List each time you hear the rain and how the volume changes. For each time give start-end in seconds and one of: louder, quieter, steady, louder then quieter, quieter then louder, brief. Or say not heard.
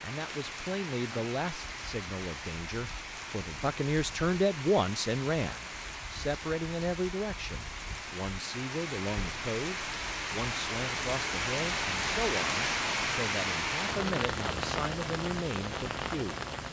0.0-16.6 louder.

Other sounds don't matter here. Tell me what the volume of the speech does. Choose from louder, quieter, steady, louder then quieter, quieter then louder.
louder then quieter.